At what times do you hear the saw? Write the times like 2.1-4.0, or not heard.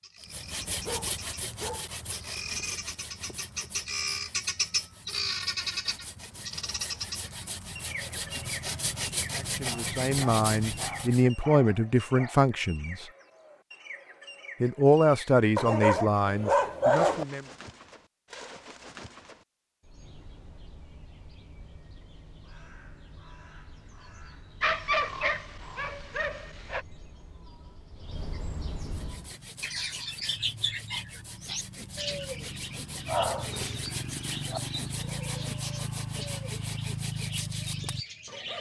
0.2-11.2, 28.8-38.5.